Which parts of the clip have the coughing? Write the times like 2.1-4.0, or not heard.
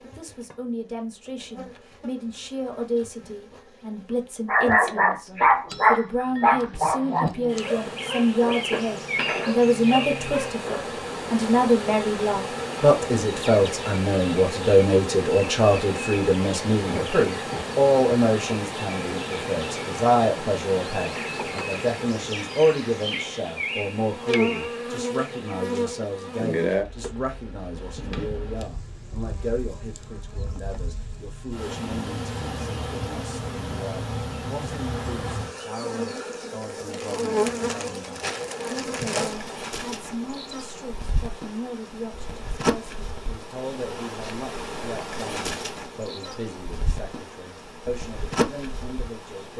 16.8-17.6.